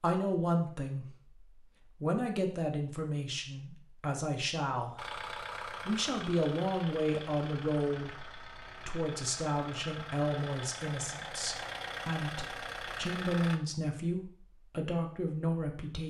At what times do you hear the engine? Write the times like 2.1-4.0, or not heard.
5.0-13.6.